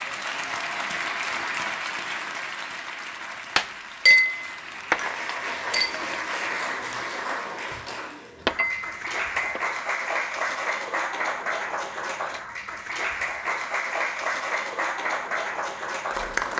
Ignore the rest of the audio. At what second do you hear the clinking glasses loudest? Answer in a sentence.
The volume of the clinking glasses peaks at 4 seconds.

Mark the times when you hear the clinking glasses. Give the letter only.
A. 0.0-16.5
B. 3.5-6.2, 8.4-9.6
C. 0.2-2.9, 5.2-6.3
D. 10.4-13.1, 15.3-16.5
B.